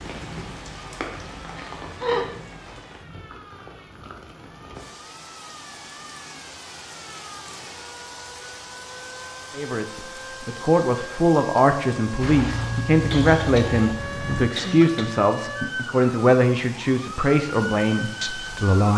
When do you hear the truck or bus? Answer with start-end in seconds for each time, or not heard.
12.2-14.5.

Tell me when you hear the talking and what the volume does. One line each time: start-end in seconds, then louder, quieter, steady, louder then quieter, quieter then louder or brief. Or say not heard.
9.6-18.9 steady.